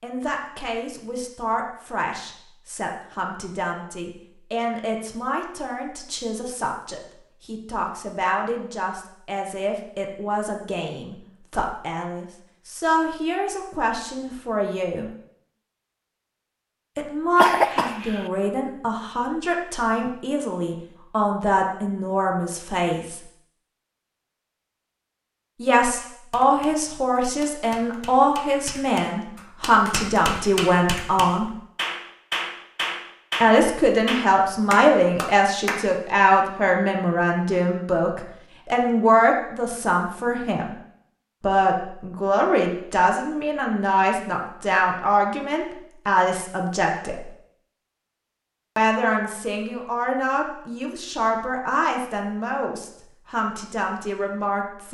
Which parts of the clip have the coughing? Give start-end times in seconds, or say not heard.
17.4-18.2.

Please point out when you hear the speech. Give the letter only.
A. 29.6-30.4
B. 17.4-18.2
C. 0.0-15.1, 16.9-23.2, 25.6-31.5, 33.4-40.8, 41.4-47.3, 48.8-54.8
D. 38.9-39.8
C.